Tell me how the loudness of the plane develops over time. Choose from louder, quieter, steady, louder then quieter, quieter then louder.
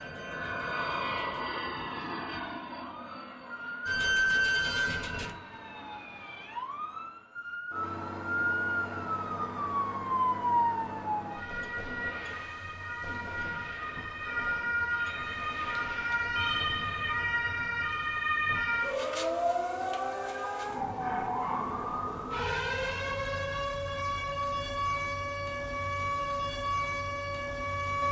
quieter.